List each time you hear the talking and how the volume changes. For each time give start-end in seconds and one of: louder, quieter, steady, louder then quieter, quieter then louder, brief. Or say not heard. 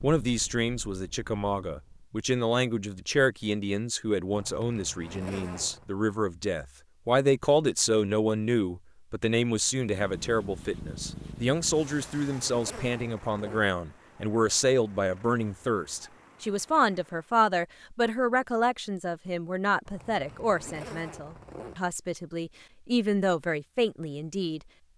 0.0-24.6 steady.